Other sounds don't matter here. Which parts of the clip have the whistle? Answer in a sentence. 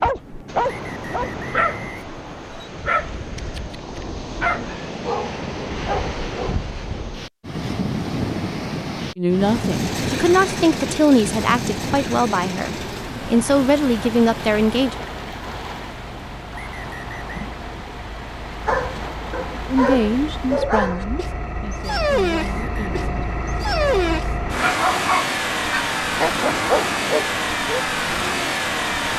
You can hear the whistle from 0.6 to 2.6 s, from 16.5 to 17.6 s and from 22.4 to 23.0 s.